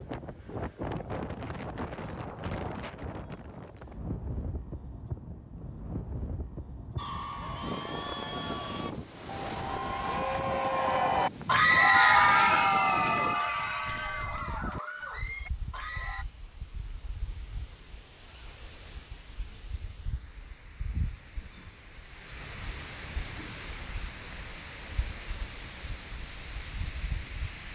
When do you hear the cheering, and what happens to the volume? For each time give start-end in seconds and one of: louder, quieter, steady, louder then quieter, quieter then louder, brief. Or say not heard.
7.0-16.2 louder then quieter.